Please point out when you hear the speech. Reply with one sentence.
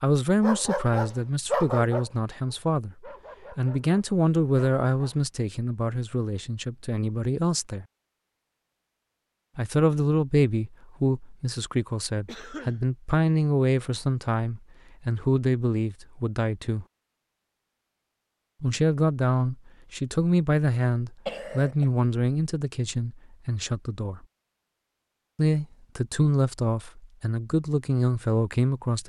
The speech can be heard from 0.0 to 7.8 s, from 9.6 to 16.9 s, from 18.6 to 24.2 s and from 25.4 to 29.0 s.